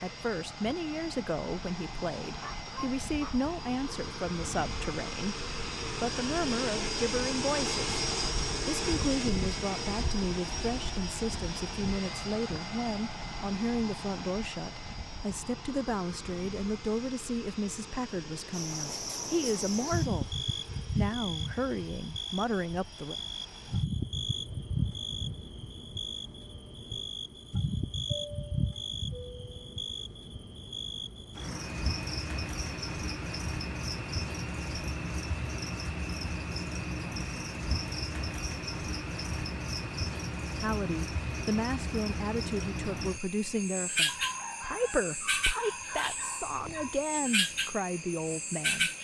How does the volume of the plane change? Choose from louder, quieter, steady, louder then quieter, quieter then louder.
quieter.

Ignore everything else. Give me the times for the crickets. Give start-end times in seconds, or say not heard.
18.5-49.0.